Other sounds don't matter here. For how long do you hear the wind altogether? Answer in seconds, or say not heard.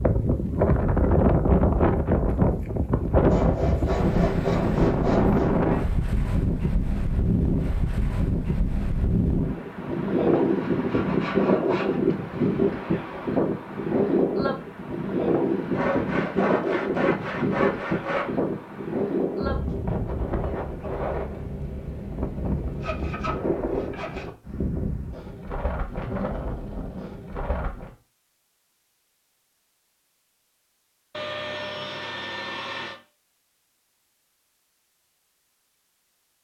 28 s.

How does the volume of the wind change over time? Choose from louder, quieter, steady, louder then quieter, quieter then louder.
quieter.